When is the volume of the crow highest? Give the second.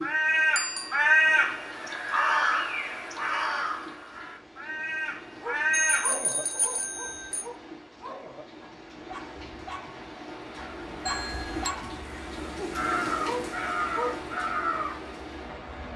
1 s.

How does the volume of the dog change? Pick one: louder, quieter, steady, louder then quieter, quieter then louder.
quieter then louder.